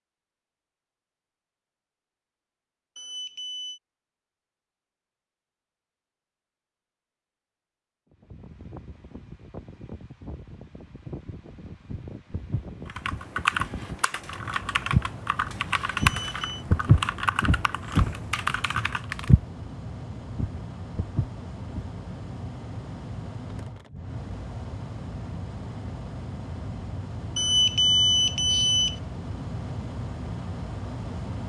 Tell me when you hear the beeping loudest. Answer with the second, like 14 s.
28 s.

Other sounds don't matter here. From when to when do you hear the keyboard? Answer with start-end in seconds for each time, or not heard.
12.8-19.4.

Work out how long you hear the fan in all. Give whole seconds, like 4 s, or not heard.
23 s.